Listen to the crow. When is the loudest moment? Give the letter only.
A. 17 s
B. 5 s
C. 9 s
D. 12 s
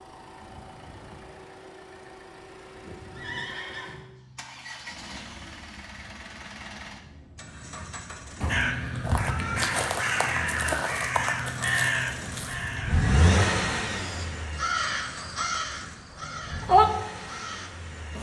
A.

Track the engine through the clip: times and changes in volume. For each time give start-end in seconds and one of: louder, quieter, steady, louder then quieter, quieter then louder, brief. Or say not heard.
0.0-18.1 louder then quieter.